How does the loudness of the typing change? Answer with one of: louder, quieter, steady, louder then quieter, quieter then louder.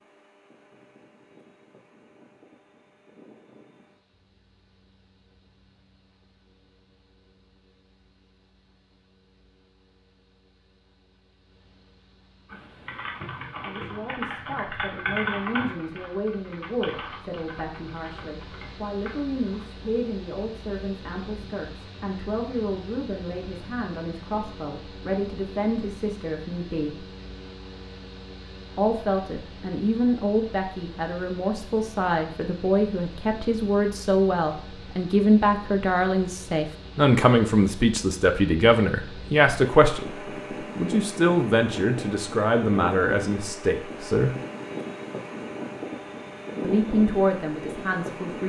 louder then quieter.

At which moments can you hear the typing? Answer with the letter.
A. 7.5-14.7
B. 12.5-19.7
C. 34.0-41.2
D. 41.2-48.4
B.